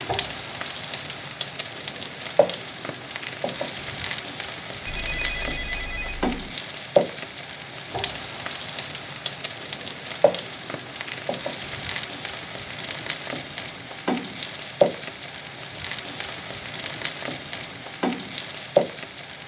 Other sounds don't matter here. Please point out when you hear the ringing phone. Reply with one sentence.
The ringing phone can be heard from 4.8 to 6.3 s.